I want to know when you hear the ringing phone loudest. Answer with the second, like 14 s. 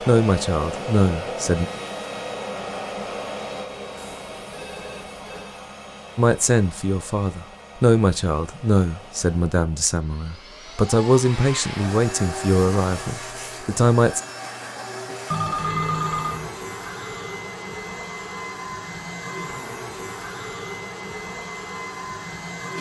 16 s.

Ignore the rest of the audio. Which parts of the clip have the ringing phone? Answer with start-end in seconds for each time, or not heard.
4.0-5.6, 15.3-16.5.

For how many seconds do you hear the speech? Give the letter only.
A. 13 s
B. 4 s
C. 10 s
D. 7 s
C.